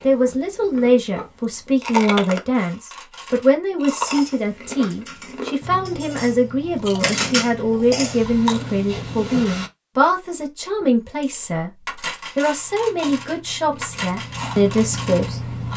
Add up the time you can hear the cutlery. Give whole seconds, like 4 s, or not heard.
10 s.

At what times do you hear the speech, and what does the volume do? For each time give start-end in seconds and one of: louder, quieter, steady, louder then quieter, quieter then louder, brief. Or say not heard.
0.0-15.6 steady.